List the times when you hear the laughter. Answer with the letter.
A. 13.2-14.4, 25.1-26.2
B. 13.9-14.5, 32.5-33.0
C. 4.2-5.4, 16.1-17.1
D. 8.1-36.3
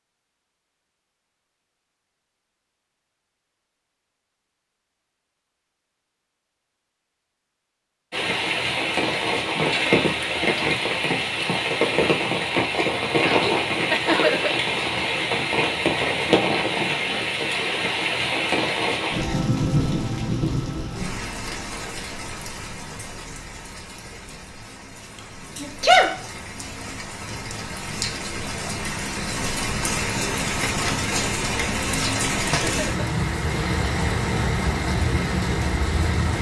B.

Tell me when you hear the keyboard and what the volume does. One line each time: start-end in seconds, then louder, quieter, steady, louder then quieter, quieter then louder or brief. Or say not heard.
not heard.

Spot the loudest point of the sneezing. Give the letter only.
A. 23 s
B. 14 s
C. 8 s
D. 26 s
D.